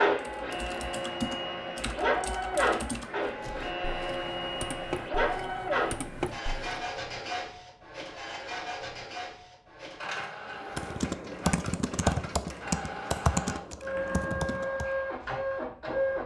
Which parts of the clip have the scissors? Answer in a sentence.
You can't hear the scissors here.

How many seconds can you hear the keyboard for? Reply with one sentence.
The keyboard can be heard for 11 seconds in total.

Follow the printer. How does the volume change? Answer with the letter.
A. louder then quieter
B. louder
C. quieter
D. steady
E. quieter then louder
E.